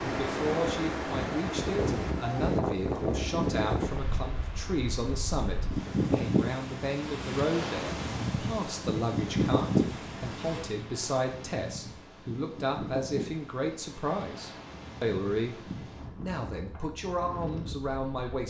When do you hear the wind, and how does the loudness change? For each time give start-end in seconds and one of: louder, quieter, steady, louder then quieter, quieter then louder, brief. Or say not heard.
0.0-18.4 quieter.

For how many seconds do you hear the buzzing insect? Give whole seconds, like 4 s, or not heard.
not heard.